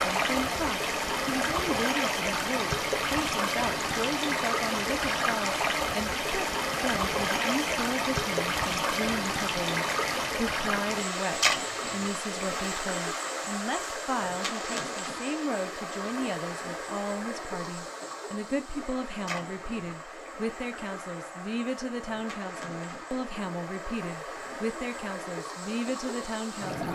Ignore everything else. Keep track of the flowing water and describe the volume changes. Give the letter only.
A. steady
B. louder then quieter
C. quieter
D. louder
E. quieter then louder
C.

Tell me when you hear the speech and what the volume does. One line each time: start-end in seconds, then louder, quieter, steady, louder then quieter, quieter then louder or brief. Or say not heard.
0.0-26.9 steady.